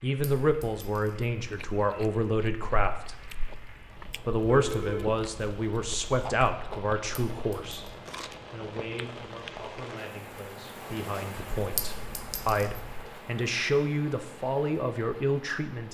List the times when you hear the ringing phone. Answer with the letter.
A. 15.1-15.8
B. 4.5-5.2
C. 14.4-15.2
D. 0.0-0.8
B.